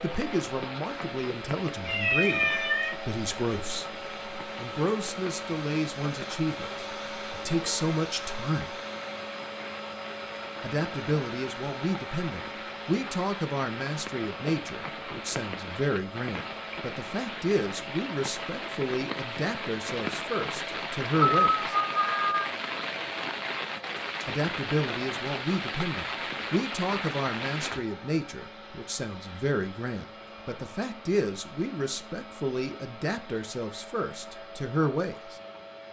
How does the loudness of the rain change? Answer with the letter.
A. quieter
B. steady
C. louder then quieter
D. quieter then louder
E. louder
E.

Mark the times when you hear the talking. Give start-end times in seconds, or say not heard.
0.0-8.8, 10.6-21.8, 24.2-35.4.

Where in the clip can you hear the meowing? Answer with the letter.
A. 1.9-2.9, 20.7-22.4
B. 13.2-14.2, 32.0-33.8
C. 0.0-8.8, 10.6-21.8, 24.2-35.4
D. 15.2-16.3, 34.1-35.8
A.